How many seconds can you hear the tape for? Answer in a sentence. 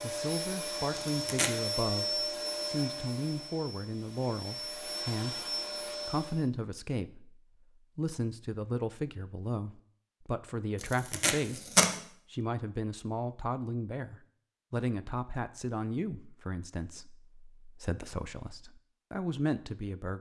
The tape can be heard for 2 seconds in total.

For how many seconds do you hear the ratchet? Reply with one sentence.
You can't hear the ratchet here.